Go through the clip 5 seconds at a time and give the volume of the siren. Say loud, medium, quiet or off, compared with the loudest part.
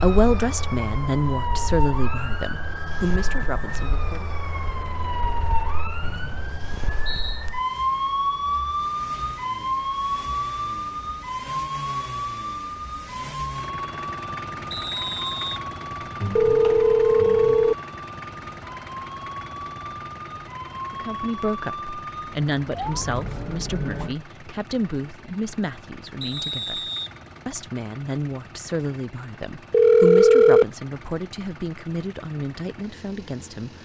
medium, loud, loud, medium, medium, off, off.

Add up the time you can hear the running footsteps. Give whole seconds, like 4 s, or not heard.
not heard.